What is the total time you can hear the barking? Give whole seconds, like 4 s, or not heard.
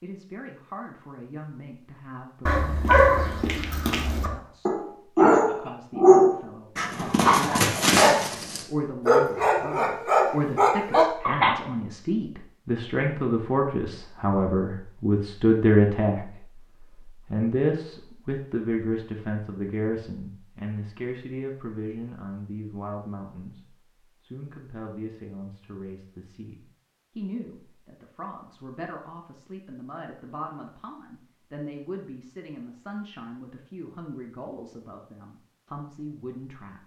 9 s.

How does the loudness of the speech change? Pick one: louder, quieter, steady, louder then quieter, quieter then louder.
louder then quieter.